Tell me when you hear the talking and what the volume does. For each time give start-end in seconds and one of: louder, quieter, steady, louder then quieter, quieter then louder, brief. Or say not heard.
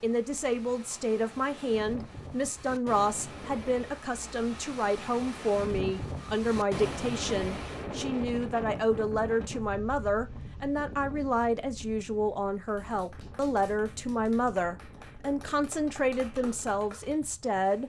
0.0-17.8 steady.